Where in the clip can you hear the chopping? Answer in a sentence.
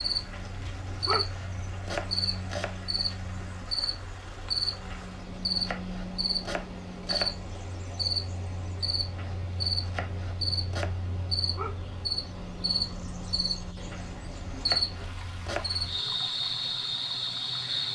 The chopping can be heard from 0.3 to 2.8 s, from 4.9 to 7.3 s, from 9.2 to 10.9 s and from 13.9 to 15.8 s.